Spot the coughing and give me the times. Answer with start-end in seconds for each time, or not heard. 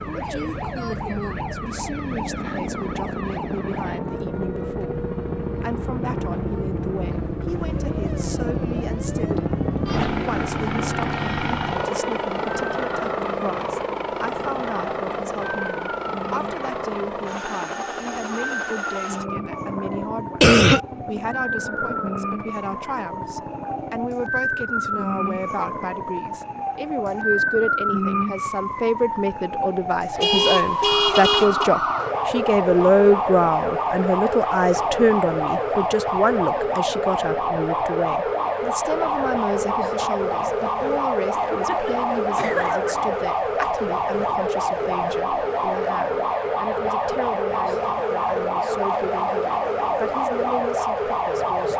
20.4-20.8, 41.3-43.1.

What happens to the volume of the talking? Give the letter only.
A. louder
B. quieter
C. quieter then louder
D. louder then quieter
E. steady
D.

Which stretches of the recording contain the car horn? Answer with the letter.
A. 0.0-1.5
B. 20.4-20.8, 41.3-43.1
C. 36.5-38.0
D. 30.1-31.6
D.